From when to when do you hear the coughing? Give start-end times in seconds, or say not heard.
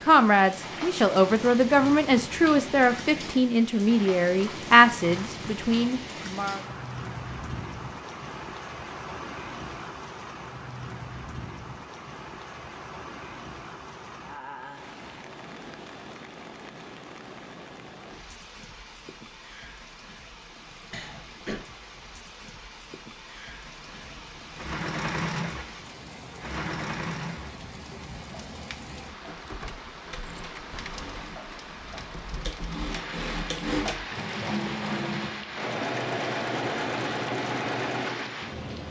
20.9-21.6.